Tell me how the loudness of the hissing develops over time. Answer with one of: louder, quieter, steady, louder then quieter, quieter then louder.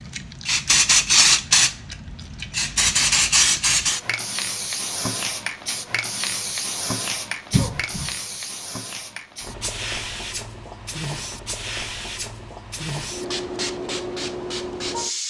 quieter.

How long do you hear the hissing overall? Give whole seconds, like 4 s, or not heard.
15 s.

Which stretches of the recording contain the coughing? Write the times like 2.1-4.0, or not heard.
7.5-8.1.